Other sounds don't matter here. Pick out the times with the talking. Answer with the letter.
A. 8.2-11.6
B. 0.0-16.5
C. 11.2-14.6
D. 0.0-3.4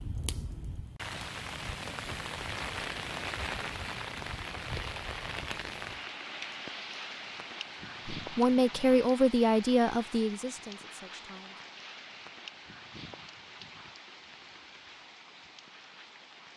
A.